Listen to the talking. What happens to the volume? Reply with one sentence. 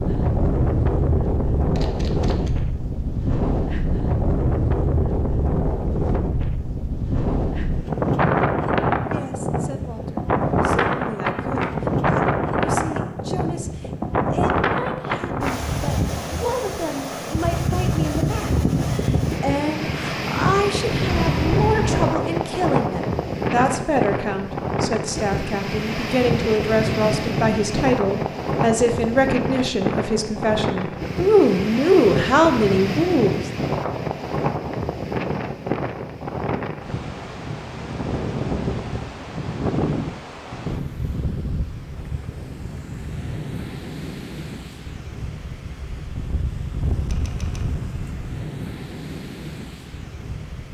The volume of the talking goes up.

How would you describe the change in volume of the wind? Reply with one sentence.
The volume of the wind goes down.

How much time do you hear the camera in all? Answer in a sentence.
The camera can be heard for 2 seconds in total.